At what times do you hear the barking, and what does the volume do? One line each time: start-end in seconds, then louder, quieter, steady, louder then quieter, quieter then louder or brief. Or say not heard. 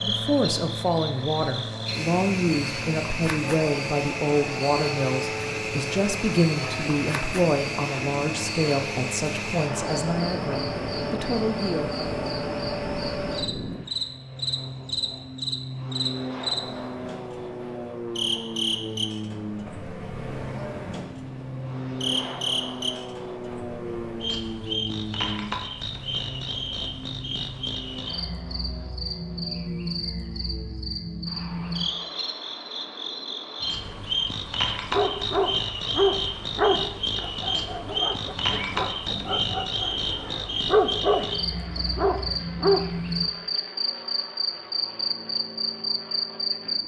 34.9-42.8 quieter then louder.